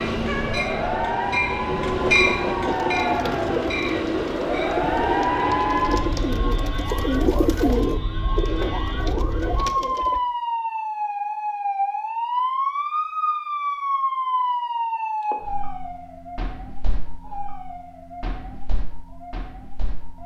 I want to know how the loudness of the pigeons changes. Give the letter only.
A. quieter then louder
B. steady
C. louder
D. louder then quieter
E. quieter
D.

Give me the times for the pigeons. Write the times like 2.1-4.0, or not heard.
2.6-10.2.